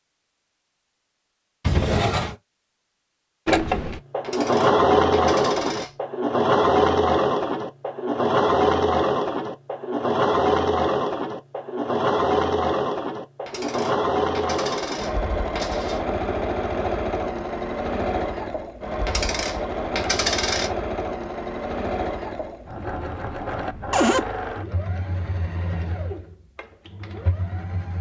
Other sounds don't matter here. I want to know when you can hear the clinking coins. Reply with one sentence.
You can hear the clinking coins from 4.2 to 6.0 s, from 13.4 to 16.0 s and from 19.1 to 20.7 s.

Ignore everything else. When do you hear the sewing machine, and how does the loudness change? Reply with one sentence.
You can hear the sewing machine from 3.5 to 27.9 s, getting quieter.